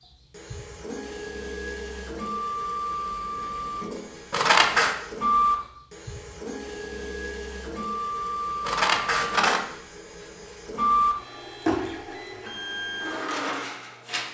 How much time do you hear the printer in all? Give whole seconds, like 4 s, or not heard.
14 s.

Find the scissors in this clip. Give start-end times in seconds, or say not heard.
4.3-5.0, 8.7-9.6.